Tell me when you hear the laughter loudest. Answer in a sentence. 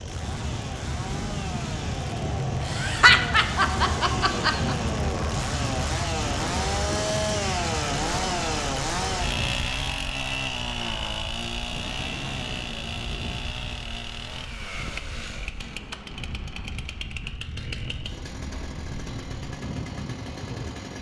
The loudest moment of the laughter is at 3 seconds.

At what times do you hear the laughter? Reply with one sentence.
You can hear the laughter from 2.6 to 4.8 s.